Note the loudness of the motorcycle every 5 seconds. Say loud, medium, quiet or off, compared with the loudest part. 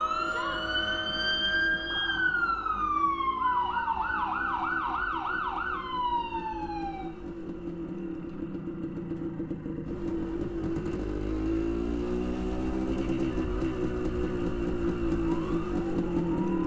quiet, medium, loud, loud.